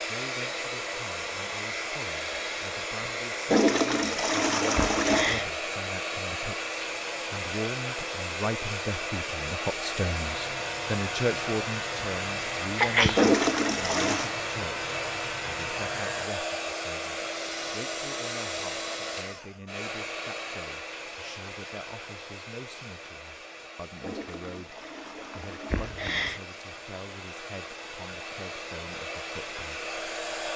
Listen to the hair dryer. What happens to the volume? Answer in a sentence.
The loudness of the hair dryer goes down.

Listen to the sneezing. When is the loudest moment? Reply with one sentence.
The loudest moment of the sneezing is at 13 seconds.